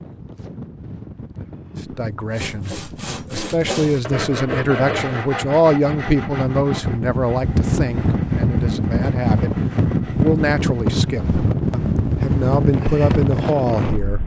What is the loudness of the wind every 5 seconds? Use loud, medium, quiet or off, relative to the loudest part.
quiet, loud, loud.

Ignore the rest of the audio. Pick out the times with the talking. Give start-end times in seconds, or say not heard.
1.9-14.2.